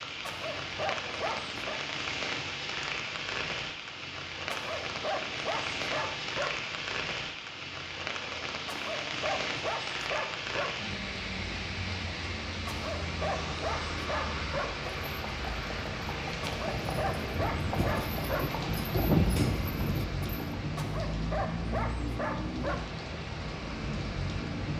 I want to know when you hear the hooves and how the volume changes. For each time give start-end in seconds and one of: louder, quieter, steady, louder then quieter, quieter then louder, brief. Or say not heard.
14.8-20.5 louder.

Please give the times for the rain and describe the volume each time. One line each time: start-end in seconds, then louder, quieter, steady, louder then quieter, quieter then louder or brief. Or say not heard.
0.0-24.7 steady.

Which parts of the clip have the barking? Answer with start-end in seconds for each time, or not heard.
0.2-1.8, 4.5-6.5, 8.7-10.7, 12.7-14.7, 16.4-18.4, 20.8-22.8.